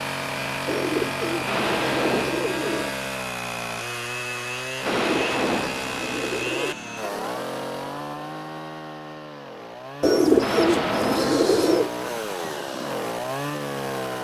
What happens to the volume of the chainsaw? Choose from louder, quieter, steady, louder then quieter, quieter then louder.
quieter then louder.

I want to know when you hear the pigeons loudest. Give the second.
10 s.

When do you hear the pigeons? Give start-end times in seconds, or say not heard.
0.7-3.0, 4.8-6.8, 10.0-11.9.